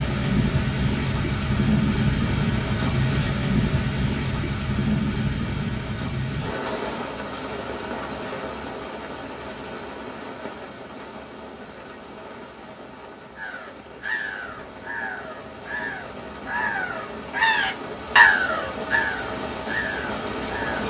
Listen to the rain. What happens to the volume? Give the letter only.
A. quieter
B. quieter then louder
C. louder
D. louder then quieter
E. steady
B.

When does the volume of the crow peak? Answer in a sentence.
The loudest moment of the crow is at 18 seconds.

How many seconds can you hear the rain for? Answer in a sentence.
The rain can be heard for 21 seconds in total.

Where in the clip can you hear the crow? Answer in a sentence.
You can hear the crow from 13.3 to 20.8 s.